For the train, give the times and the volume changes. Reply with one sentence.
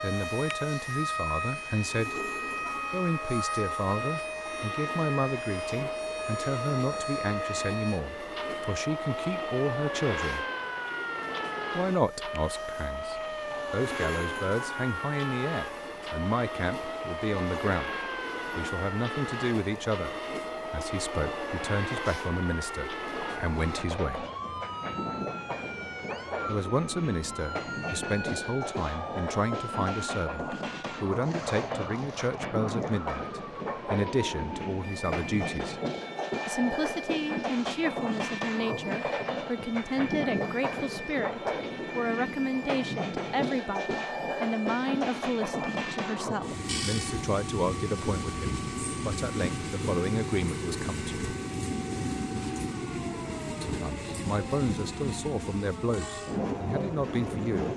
The train can be heard from 0.0 to 57.7 s, getting louder.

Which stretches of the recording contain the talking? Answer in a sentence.
You can hear the talking from 0.0 to 2.2 s, from 2.9 to 10.4 s, from 11.8 to 24.2 s, from 26.4 to 35.8 s, from 36.5 to 51.2 s and from 53.6 to 57.7 s.